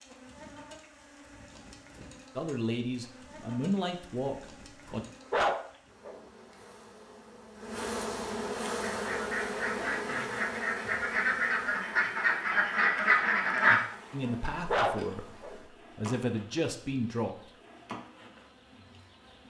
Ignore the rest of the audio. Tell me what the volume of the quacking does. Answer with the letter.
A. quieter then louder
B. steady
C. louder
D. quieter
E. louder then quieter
C.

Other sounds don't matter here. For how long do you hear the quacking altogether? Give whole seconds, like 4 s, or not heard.
5 s.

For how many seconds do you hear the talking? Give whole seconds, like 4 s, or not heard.
6 s.